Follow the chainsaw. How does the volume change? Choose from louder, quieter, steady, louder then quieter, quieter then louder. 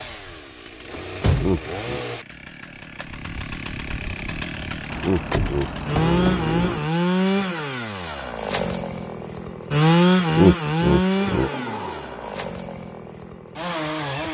louder then quieter.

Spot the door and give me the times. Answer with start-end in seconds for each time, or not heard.
0.9-1.9, 4.9-6.8, 11.2-12.5.